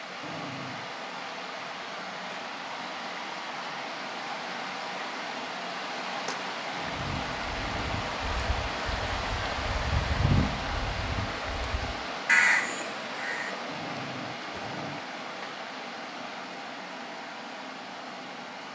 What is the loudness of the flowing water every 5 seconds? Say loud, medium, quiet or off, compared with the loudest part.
loud, loud, loud, medium.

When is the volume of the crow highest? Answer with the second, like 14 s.
12 s.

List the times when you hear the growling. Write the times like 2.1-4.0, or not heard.
0.2-0.9, 6.7-8.2, 13.7-15.0.